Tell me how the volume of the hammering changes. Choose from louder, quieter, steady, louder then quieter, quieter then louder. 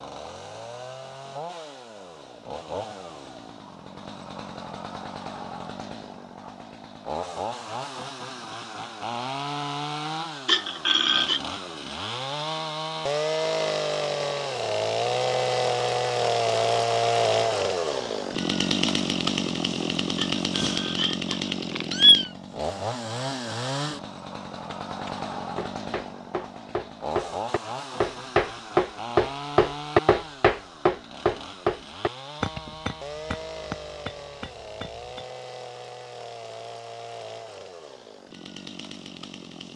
louder then quieter.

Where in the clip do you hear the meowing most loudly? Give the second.
22 s.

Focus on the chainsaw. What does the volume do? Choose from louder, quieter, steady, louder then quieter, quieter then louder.
louder then quieter.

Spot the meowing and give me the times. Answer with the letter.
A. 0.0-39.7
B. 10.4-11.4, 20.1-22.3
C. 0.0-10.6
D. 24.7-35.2
B.